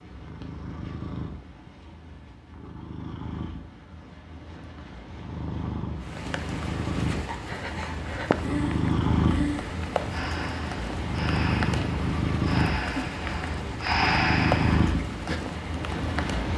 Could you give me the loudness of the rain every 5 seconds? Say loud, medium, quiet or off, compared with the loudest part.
off, loud, loud, loud.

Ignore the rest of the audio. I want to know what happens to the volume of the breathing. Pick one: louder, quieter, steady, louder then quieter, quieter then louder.
louder.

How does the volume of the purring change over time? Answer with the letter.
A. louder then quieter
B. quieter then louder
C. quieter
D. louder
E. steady
D.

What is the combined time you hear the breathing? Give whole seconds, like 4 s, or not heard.
8 s.